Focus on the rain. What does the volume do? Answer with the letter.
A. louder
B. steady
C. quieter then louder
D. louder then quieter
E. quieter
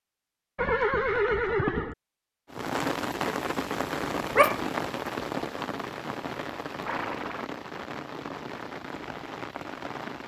E.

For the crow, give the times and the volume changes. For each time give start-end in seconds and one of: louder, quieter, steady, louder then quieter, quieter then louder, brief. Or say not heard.
not heard.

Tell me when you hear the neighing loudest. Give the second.
1 s.